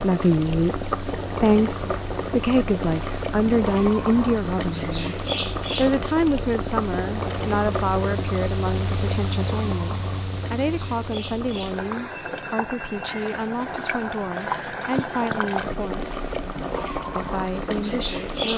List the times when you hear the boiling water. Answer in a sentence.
The boiling water can be heard from 0.0 to 18.5 s.